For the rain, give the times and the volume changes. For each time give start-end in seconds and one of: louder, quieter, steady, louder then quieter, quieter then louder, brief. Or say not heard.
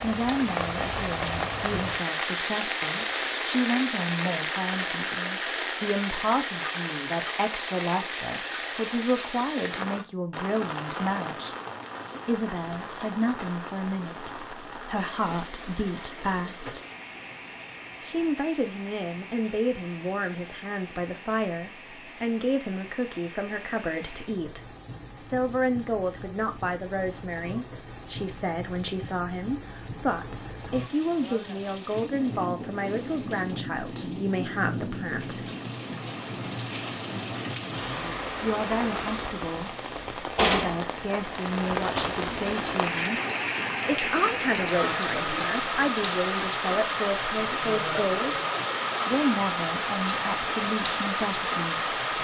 0.0-52.2 quieter then louder.